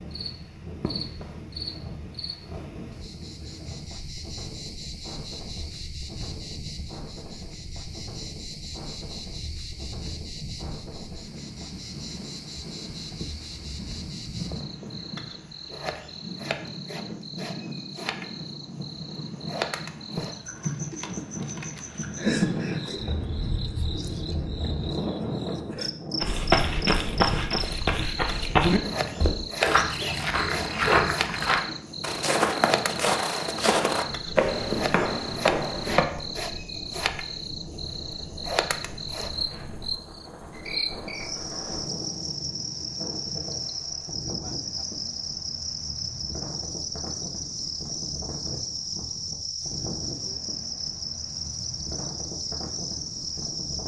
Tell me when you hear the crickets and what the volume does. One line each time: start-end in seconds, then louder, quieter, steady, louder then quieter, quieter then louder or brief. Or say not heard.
0.0-53.8 louder.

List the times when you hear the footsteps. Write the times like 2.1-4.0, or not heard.
26.2-36.0.